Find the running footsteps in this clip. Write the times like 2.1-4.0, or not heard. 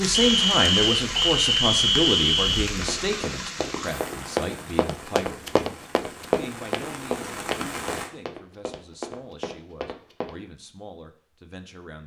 2.8-10.3.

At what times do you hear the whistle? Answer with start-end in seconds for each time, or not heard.
0.1-2.7.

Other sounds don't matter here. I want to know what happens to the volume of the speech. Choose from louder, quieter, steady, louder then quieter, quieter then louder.
quieter.